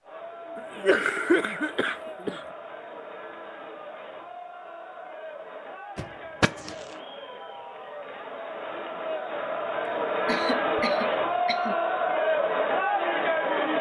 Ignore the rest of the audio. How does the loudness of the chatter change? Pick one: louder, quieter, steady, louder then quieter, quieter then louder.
louder.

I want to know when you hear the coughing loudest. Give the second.
1 s.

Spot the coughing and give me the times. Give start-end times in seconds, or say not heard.
0.6-2.5, 6.0-6.8, 9.8-11.8.